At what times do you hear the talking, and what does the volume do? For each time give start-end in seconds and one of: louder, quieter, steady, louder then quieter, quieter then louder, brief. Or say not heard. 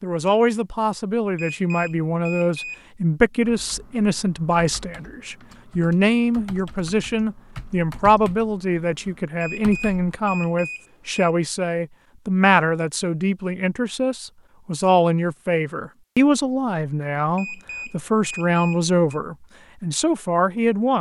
0.0-20.9 steady.